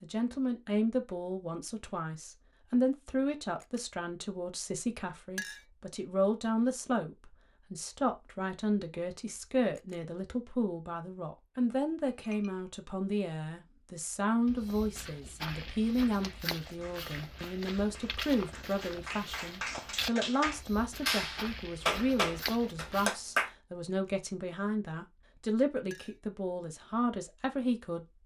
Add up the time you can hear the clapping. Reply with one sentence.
The clapping can be heard for 7 seconds in total.